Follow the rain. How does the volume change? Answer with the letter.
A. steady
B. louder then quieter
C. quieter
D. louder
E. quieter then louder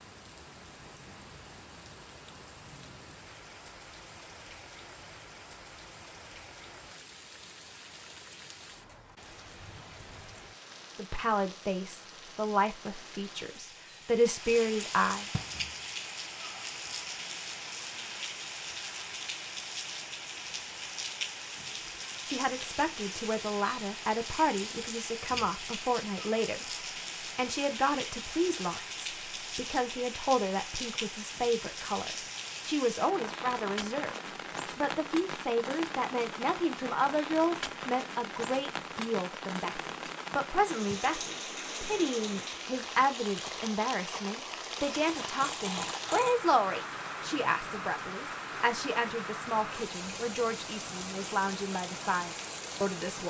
D.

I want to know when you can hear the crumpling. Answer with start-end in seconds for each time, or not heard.
44.8-46.4.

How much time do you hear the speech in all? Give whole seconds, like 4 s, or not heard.
35 s.